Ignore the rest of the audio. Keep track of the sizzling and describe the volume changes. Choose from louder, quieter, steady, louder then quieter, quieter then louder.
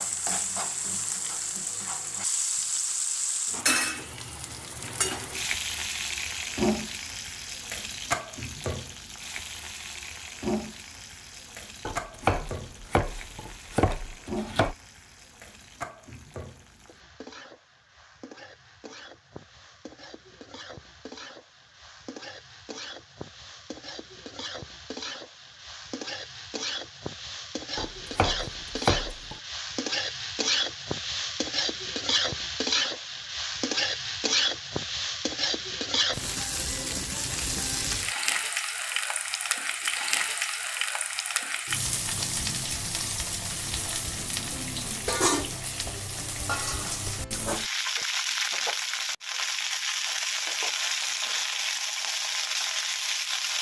quieter then louder.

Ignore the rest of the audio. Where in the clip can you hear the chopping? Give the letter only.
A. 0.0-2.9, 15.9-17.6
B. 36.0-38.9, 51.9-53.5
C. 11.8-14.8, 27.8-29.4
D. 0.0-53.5
C.